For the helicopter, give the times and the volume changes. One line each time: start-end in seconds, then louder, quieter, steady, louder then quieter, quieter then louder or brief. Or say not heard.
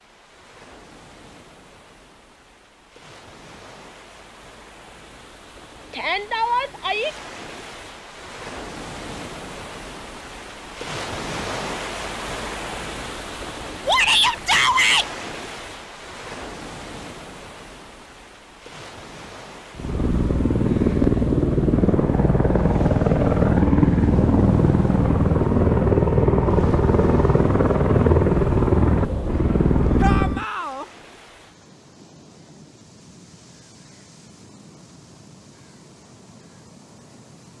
19.7-30.4 steady.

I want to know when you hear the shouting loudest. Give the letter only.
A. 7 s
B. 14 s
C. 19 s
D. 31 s
B.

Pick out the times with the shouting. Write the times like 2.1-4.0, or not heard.
5.9-7.1, 13.8-15.1, 30.0-30.9.